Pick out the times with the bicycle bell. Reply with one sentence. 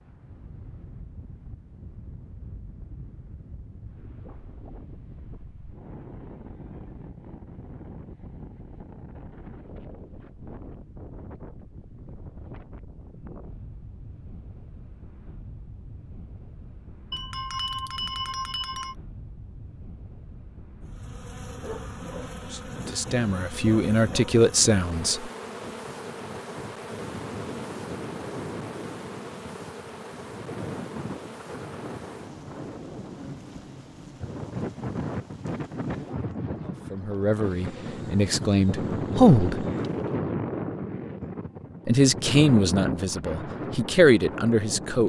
The bicycle bell can be heard from 17.1 to 18.9 s.